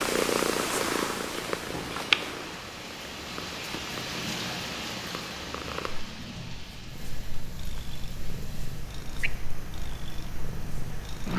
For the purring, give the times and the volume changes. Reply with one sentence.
You can hear the purring from 0.0 to 11.3 s, getting quieter.